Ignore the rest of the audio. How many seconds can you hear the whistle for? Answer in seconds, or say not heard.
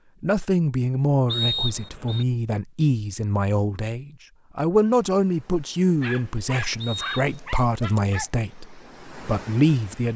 2 s.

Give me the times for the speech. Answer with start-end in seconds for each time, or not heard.
0.2-10.1.